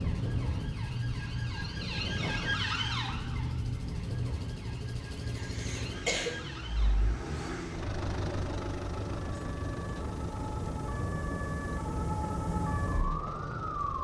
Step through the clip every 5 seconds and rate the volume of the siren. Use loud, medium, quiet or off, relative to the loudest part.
loud, medium, loud.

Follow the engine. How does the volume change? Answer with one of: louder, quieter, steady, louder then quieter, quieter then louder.
louder then quieter.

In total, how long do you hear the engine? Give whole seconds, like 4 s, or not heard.
14 s.